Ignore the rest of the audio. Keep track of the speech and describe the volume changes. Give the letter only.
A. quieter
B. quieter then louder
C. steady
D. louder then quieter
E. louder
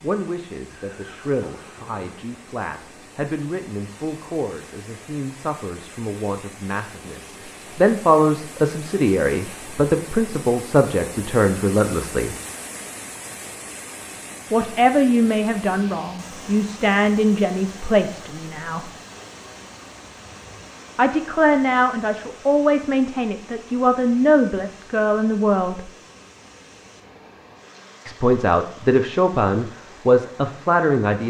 E.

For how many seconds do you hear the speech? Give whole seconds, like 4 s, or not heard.
25 s.